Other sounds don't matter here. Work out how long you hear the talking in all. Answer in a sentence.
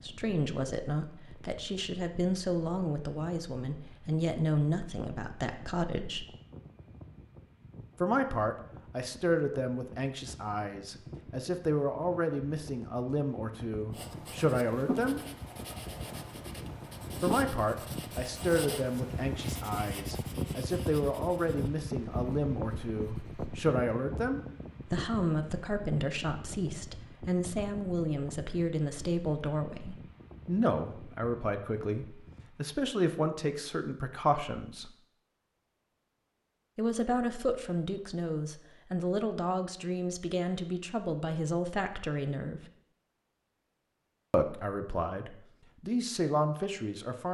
You can hear the talking for 40 seconds altogether.